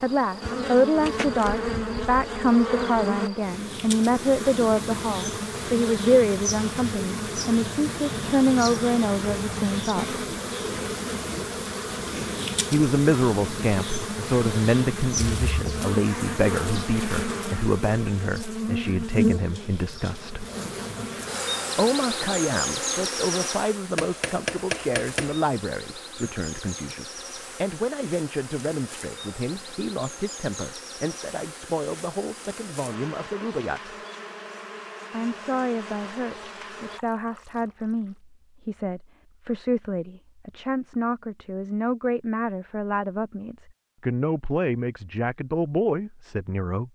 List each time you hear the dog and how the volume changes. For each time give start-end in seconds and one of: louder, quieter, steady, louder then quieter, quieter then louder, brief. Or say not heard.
not heard.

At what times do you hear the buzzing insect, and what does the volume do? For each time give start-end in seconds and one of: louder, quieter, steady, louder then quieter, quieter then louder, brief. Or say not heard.
0.0-37.0 quieter.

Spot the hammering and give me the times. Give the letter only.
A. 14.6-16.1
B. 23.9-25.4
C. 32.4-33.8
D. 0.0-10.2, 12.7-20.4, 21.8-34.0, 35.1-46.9
B.